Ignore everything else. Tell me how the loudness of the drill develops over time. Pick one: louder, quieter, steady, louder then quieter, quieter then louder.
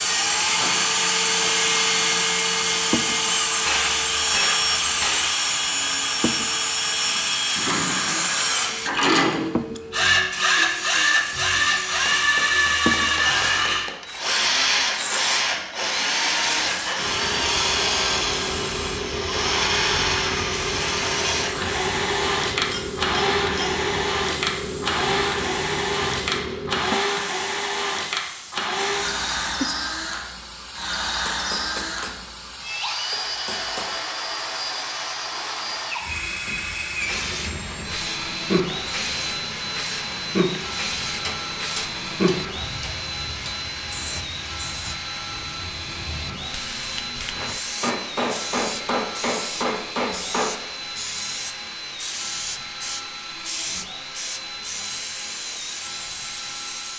quieter.